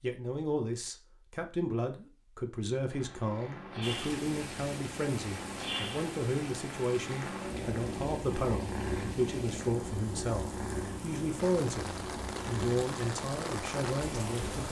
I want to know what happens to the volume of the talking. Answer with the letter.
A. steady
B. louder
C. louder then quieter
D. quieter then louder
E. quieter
A.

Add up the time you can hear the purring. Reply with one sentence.
The purring can be heard for 12 seconds in total.